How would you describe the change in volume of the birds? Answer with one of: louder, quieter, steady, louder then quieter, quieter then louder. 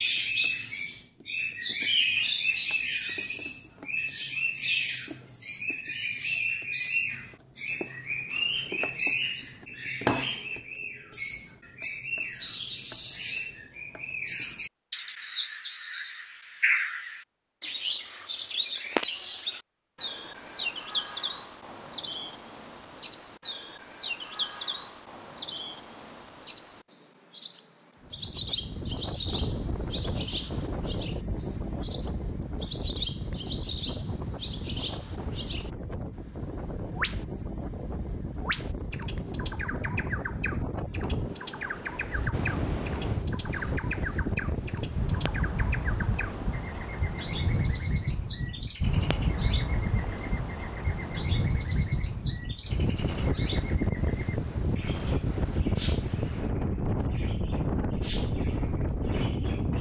quieter.